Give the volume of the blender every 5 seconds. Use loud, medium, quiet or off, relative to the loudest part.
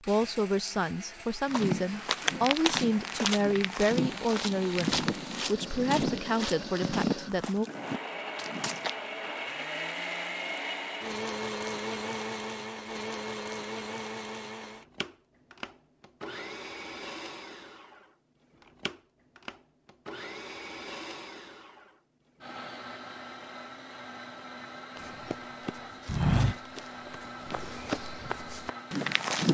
medium, loud, loud, medium, medium, medium.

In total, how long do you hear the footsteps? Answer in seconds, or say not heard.
12 s.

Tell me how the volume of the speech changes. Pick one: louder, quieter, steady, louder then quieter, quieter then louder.
steady.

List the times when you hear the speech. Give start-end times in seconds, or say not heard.
0.1-7.7.